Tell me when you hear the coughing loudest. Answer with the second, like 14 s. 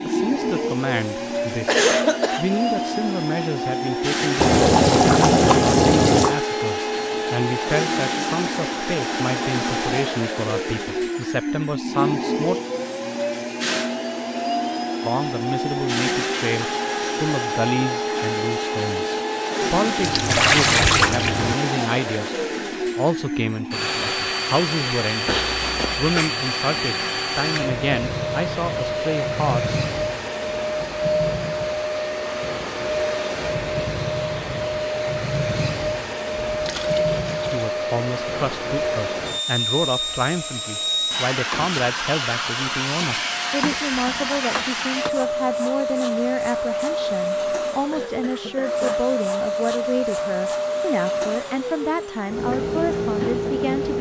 2 s.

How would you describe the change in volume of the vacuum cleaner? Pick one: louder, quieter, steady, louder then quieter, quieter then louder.
steady.